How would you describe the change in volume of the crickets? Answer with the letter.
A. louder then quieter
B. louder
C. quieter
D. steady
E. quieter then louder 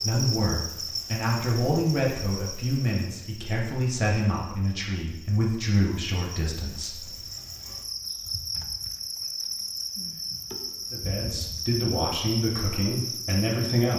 E.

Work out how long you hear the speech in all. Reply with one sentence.
You can hear the speech for 10 seconds altogether.